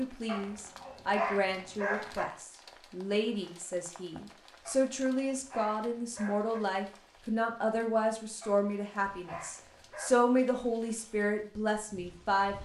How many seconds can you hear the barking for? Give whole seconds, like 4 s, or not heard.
6 s.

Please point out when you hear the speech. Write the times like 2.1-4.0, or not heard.
0.0-12.5.